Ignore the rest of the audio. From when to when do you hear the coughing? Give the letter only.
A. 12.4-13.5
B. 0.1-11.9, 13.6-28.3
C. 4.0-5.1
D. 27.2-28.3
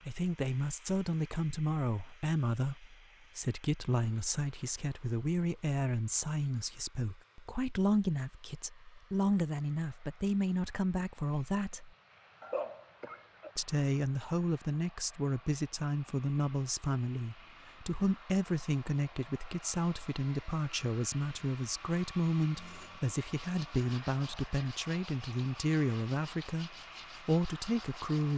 A.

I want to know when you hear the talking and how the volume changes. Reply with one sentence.
The talking can be heard from 0.1 to 11.9 s, at a steady volume; and from 13.6 to 28.3 s, at a steady volume.